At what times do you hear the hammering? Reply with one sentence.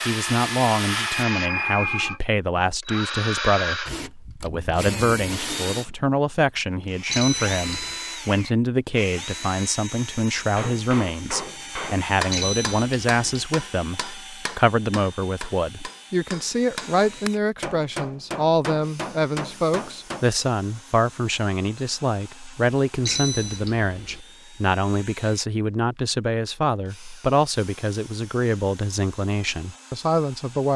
You can hear the hammering from 10.4 to 20.2 s.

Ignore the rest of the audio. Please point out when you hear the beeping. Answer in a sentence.
The beeping can be heard from 7.1 to 8.0 s, from 12.3 to 13.5 s and from 23.0 to 24.2 s.